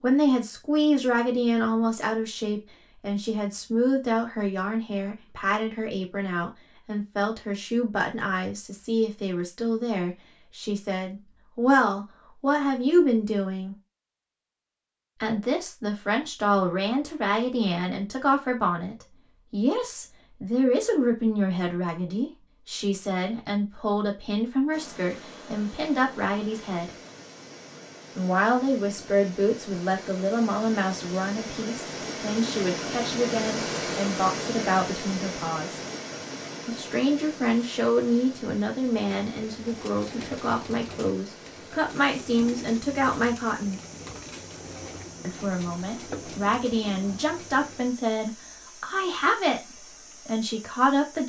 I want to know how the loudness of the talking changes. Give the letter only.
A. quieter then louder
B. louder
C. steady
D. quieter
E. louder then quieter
C.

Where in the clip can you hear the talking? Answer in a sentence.
You can hear the talking from 0.0 to 13.8 s, from 15.2 to 26.9 s, from 28.1 to 35.9 s, from 36.6 to 43.8 s and from 45.2 to 51.2 s.